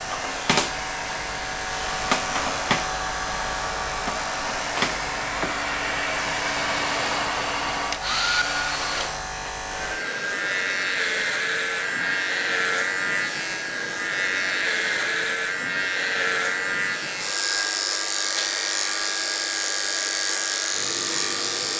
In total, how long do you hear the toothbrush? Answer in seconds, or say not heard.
not heard.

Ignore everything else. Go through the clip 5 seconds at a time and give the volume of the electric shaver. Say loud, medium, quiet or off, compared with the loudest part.
loud, medium, loud, loud, loud.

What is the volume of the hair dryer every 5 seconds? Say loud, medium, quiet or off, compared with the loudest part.
medium, loud, medium, medium, medium.